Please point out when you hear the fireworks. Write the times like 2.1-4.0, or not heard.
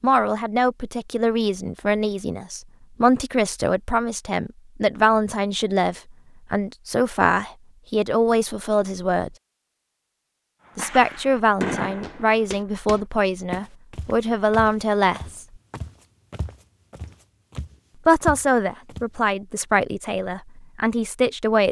10.7-13.1.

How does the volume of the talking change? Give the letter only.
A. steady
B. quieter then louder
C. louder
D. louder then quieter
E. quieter
A.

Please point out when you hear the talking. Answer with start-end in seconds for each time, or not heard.
0.0-9.3, 10.8-15.4, 18.1-21.6.